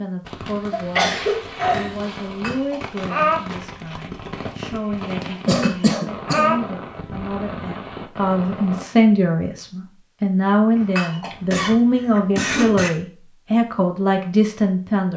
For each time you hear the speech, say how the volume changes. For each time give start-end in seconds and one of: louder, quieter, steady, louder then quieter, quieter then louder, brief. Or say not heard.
0.0-15.1 louder.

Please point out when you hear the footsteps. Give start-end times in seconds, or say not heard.
not heard.